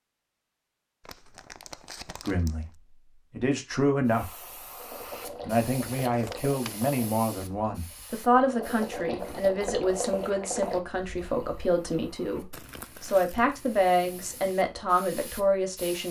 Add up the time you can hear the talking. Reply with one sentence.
You can hear the talking for 13 seconds altogether.